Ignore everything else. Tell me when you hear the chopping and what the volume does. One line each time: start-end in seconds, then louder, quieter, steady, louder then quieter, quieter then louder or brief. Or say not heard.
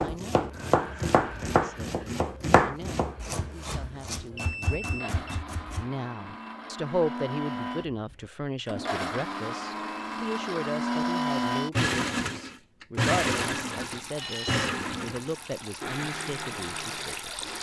0.0-5.8 quieter.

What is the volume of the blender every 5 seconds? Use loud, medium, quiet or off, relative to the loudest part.
quiet, medium, loud, medium.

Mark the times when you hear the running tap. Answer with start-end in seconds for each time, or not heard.
13.4-17.5.